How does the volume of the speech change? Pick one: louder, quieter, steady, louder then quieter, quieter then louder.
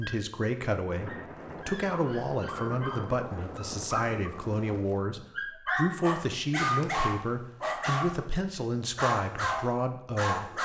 steady.